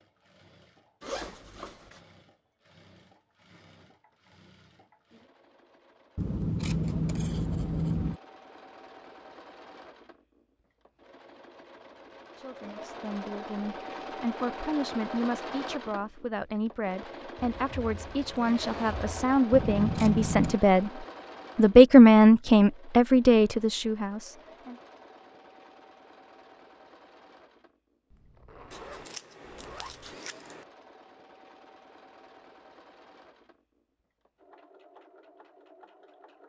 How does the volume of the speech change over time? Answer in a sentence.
The volume of the speech goes up.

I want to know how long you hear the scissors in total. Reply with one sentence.
You can hear the scissors for 5 seconds altogether.